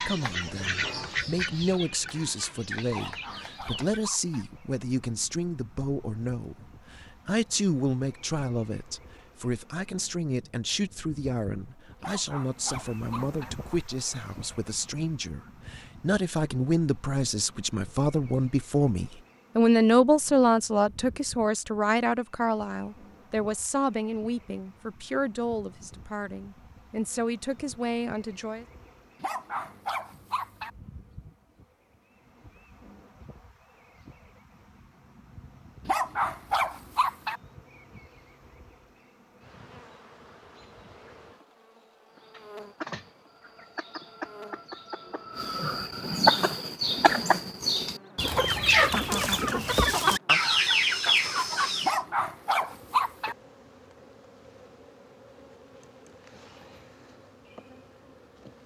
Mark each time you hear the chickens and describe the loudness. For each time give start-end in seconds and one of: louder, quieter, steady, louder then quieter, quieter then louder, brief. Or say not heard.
0.0-4.0 quieter
42.1-52.0 louder.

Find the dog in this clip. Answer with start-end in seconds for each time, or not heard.
2.9-4.5, 12.0-13.5, 29.2-30.7, 35.9-37.4, 51.8-53.4.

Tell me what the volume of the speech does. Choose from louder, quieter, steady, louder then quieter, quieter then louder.
louder then quieter.